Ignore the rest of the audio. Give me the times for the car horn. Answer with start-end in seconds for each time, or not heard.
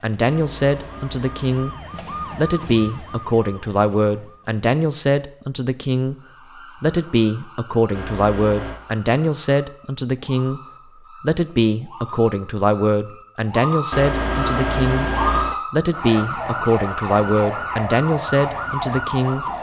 0.2-1.8, 7.9-8.8, 13.9-15.6.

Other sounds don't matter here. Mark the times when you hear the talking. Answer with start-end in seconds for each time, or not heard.
0.0-1.8, 2.4-6.2, 6.8-10.6, 11.2-15.1, 15.7-19.4.